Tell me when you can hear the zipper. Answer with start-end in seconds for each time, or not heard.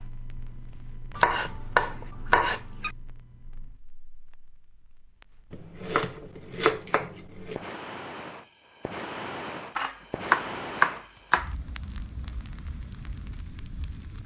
not heard.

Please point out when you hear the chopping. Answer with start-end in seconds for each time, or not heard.
1.1-2.9, 5.5-7.5, 9.8-11.5.